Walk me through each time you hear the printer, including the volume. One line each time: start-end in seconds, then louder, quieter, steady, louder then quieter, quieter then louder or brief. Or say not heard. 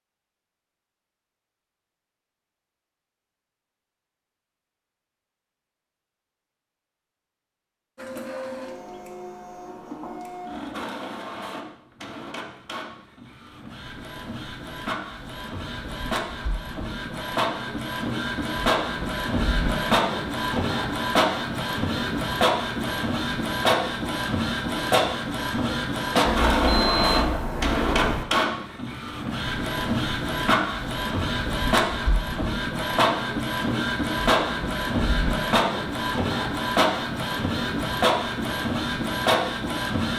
8.0-40.1 louder.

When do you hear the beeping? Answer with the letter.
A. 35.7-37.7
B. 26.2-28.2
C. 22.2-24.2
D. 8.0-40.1
B.